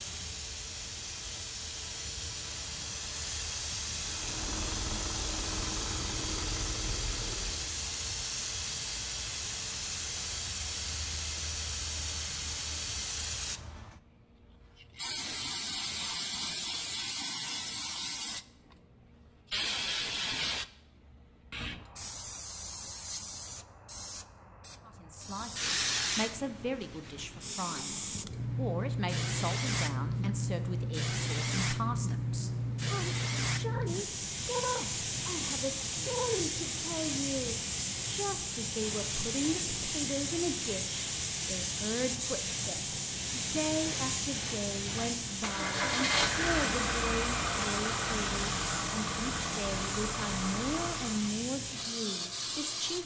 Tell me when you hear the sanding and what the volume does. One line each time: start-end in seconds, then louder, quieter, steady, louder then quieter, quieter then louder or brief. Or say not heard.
not heard.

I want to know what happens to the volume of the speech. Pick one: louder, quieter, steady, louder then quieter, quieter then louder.
steady.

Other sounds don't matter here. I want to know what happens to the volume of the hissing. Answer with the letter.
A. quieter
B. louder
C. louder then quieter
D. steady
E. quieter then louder
D.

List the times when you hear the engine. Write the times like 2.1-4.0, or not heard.
4.0-7.8, 45.4-51.4.